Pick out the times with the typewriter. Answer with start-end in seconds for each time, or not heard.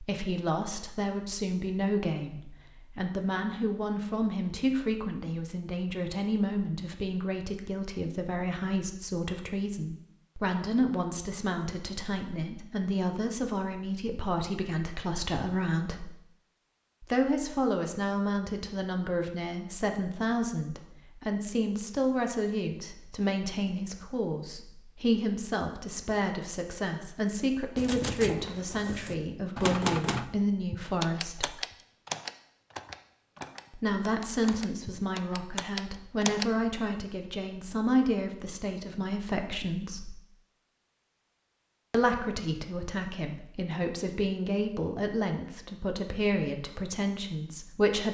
27.8-36.5.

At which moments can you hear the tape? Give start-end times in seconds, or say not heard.
not heard.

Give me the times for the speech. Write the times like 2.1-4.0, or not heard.
0.0-16.1, 17.0-31.6, 33.8-40.1, 41.9-48.1.